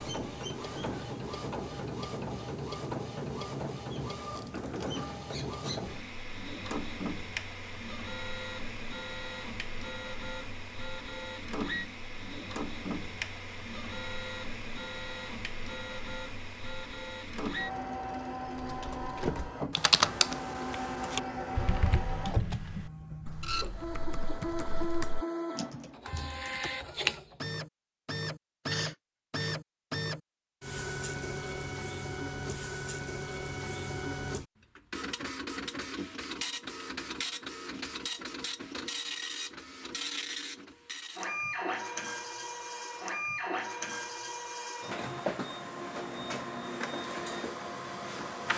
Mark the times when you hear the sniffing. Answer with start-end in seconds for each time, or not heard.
28.6-29.6.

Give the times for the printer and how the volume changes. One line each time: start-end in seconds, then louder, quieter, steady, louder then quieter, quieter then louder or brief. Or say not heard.
0.0-48.5 steady.